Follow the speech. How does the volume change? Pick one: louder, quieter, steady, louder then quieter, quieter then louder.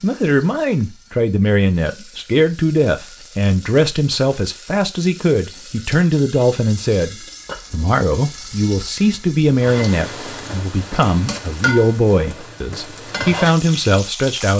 steady.